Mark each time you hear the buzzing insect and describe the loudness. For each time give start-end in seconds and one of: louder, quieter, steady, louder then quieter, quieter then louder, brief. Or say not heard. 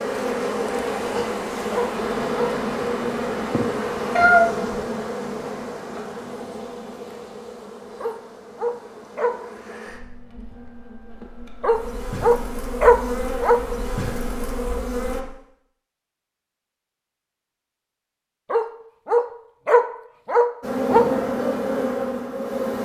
0.0-15.2 quieter then louder
20.6-22.8 brief.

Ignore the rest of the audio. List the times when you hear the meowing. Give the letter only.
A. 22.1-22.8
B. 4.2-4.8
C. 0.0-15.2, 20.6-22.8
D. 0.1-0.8
B.